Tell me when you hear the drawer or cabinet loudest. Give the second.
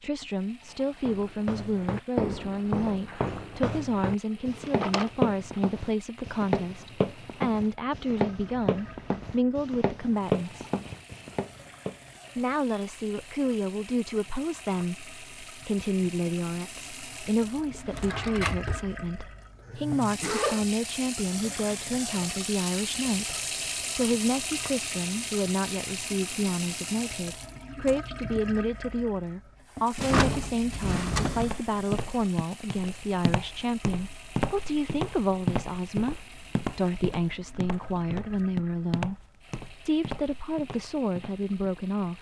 30 s.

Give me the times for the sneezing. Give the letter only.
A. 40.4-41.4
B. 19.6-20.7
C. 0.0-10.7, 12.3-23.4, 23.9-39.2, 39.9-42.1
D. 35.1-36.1
B.